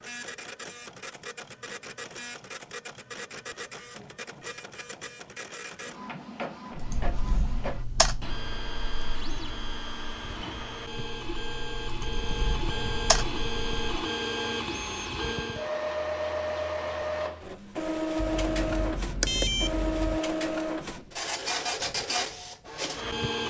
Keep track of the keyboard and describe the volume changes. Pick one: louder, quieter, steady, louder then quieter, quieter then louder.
quieter then louder.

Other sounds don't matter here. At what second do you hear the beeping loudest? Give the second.
19 s.